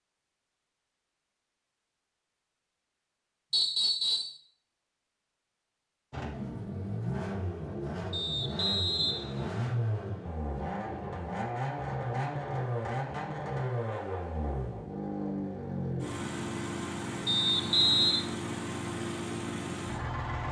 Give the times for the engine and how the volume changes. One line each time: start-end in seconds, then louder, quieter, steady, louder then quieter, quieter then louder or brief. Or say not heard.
6.1-20.4 steady.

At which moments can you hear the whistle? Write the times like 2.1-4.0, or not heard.
3.5-4.3, 8.1-9.8, 17.2-18.2.